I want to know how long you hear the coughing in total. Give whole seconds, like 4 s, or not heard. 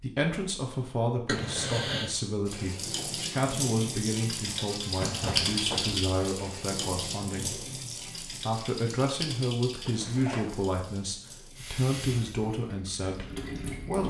3 s.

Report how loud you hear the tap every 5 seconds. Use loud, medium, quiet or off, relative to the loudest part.
loud, loud, medium.